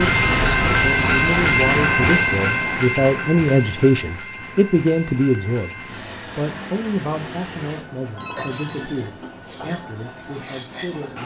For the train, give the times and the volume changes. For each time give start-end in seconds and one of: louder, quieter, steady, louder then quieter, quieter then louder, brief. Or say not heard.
0.0-11.2 quieter.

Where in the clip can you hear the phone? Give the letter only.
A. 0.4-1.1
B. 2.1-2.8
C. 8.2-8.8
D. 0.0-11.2
C.